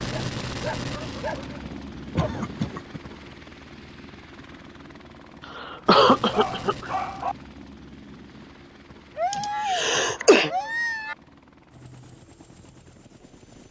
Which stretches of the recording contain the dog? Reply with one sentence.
You can hear the dog from 0.1 to 2.5 s, from 6.3 to 7.3 s and from 9.2 to 11.2 s.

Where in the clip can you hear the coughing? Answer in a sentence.
You can hear the coughing from 2.1 to 3.0 s, from 5.5 to 6.9 s and from 9.3 to 10.5 s.